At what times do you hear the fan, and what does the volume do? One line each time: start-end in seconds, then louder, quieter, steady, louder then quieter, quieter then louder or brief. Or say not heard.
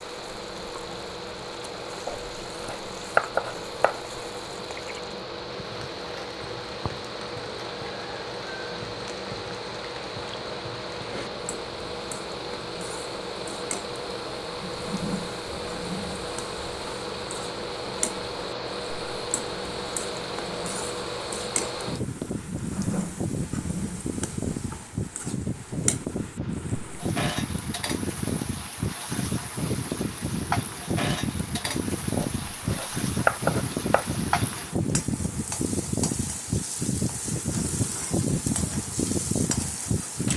0.0-40.3 louder.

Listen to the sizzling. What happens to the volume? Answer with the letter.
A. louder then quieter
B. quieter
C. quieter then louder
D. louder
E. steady
D.